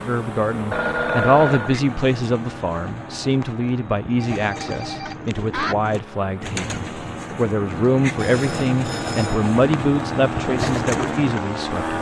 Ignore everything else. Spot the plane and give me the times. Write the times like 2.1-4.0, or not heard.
0.0-11.9.